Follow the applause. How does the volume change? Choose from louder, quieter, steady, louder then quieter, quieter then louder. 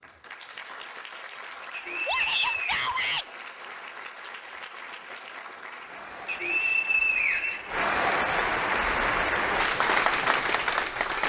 louder.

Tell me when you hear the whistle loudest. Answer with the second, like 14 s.
7 s.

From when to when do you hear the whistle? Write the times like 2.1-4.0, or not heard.
1.7-2.8, 6.2-7.8.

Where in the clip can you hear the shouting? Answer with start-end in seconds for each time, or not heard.
2.0-3.2.